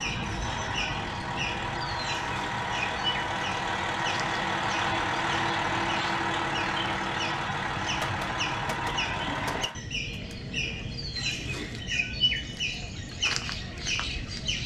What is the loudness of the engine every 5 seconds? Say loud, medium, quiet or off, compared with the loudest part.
loud, loud, off.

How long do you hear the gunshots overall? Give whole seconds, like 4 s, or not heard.
2 s.